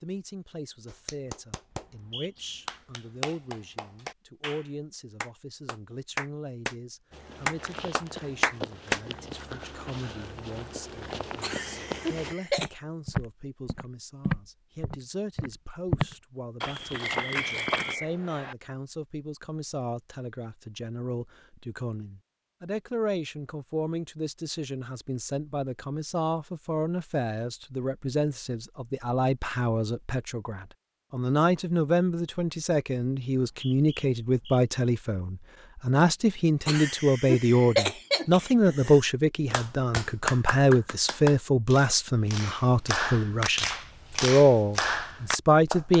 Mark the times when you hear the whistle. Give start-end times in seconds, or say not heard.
1.7-2.6, 17.0-18.6, 33.5-34.6.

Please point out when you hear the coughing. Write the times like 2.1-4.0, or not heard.
11.4-12.7, 36.6-39.0.